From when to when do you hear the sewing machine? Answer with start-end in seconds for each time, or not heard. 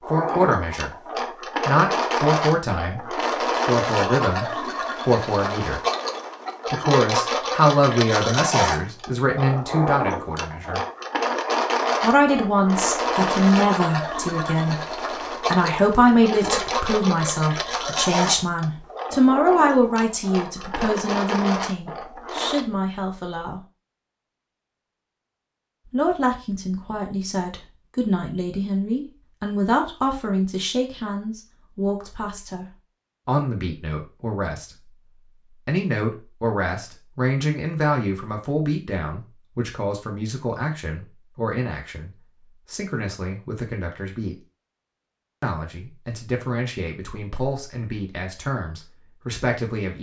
0.0-22.6.